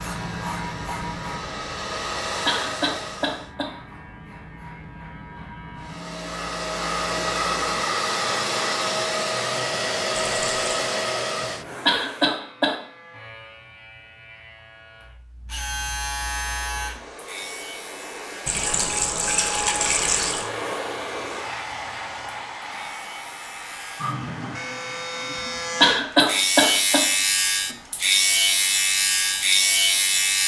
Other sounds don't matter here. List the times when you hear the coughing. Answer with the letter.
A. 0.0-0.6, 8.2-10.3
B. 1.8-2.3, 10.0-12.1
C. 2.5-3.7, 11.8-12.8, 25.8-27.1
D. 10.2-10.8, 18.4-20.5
C.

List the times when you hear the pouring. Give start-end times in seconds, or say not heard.
10.2-10.8, 18.4-20.5.